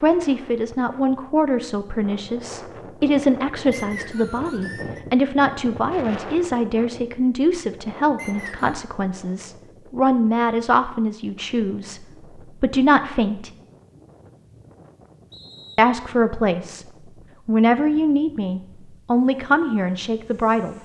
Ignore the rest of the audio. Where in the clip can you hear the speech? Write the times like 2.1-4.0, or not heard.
0.0-13.5, 15.8-16.9, 17.4-20.8.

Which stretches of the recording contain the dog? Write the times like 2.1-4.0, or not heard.
not heard.